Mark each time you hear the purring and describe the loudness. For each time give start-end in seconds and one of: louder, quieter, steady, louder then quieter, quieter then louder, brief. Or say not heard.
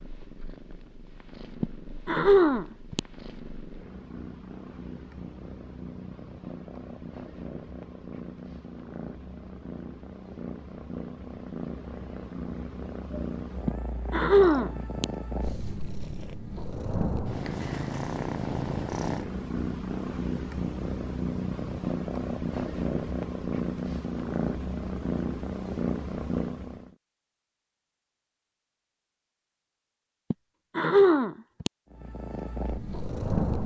0.0-26.9 louder
31.9-33.6 brief.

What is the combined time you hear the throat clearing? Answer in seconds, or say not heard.
4 s.